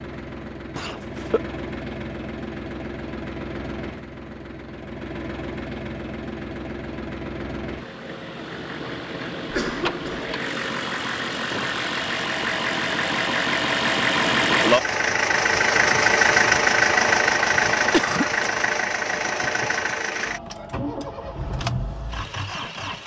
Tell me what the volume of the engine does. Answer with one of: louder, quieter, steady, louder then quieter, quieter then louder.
louder then quieter.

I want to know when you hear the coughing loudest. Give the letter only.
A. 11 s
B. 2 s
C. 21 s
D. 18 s
D.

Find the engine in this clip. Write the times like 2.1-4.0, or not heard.
0.0-23.0.